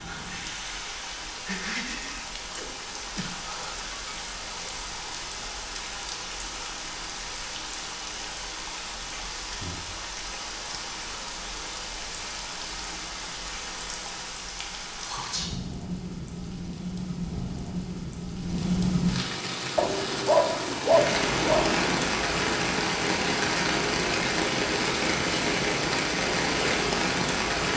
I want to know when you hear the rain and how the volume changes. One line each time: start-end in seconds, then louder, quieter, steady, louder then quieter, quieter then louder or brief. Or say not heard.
0.0-27.7 louder.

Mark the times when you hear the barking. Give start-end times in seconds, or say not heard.
19.8-22.1.